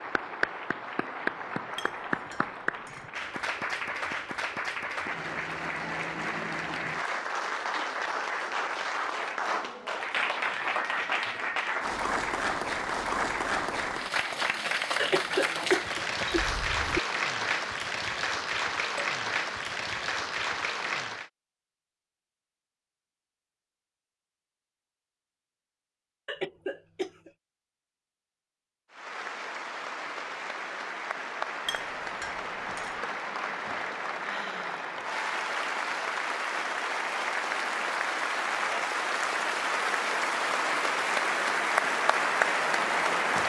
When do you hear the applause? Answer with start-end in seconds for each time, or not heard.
0.0-21.3, 28.9-43.4.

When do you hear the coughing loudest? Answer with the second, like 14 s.
16 s.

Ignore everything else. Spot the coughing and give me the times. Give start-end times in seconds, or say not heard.
14.9-17.0, 26.2-27.3.